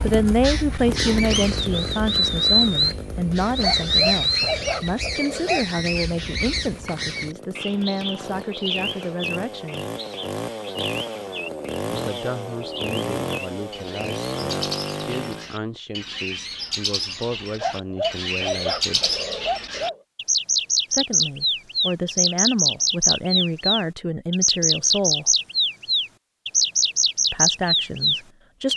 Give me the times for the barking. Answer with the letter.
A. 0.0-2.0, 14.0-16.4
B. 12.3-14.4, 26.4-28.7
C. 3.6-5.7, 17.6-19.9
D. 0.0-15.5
C.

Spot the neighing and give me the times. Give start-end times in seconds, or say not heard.
not heard.